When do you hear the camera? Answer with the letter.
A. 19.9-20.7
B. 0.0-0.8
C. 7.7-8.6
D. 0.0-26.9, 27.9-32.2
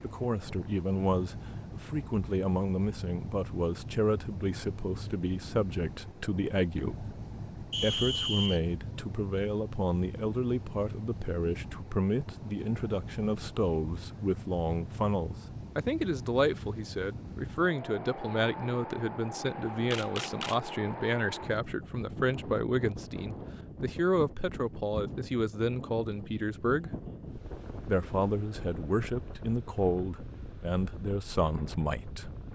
A.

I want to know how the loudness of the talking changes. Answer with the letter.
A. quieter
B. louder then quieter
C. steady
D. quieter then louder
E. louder
C.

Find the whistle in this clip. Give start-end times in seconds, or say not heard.
7.7-8.6.